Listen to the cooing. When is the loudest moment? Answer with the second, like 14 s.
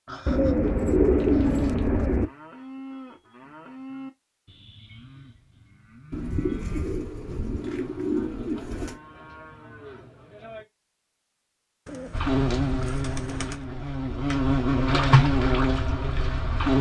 1 s.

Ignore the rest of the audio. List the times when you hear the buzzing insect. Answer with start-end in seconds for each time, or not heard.
12.1-16.7.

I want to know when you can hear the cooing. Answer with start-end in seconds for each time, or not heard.
0.2-2.2, 6.1-9.0, 11.8-13.6.